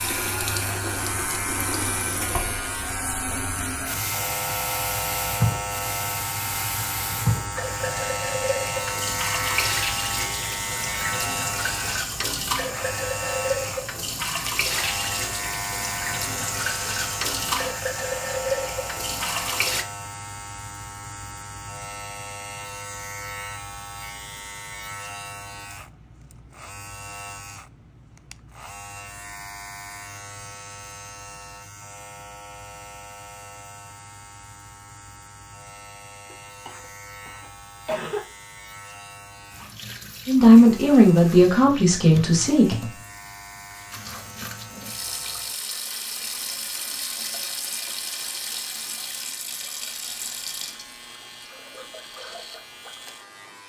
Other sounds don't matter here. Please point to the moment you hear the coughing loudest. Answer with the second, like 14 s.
38 s.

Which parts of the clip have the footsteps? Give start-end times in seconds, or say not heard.
not heard.